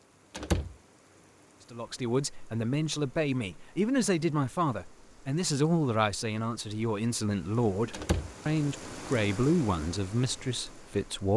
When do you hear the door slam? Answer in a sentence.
The door slam can be heard from 0.3 to 0.8 s and from 7.9 to 8.3 s.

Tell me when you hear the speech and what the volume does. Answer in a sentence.
The speech can be heard from 1.7 to 11.3 s, at a steady volume.